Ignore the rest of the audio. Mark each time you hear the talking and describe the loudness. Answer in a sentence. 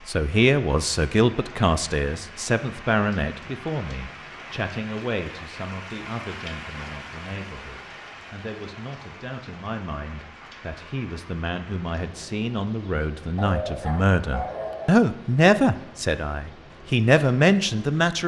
The talking can be heard from 0.1 to 18.2 s, getting quieter then louder.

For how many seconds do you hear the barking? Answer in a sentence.
You can hear the barking for 2 seconds altogether.